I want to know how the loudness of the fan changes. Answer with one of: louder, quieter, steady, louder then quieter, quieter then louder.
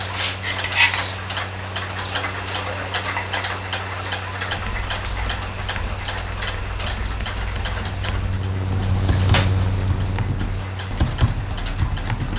louder.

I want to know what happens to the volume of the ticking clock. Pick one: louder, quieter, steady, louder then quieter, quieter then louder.
quieter.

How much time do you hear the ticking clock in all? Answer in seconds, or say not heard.
12 s.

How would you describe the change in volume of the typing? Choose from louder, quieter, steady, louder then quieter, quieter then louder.
louder.